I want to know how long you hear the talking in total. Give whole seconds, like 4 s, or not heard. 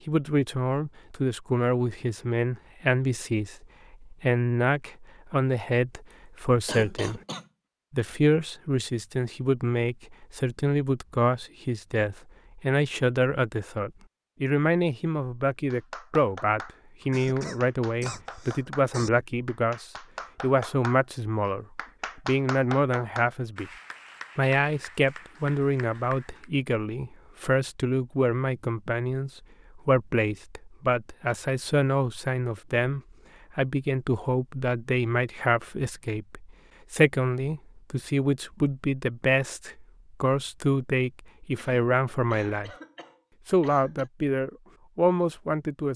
44 s.